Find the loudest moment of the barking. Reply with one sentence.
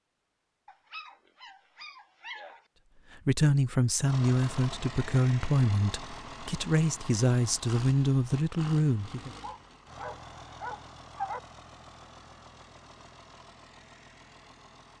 The loudest moment of the barking is at 11 seconds.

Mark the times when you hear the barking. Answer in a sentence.
The barking can be heard from 0.7 to 2.6 s and from 9.4 to 11.4 s.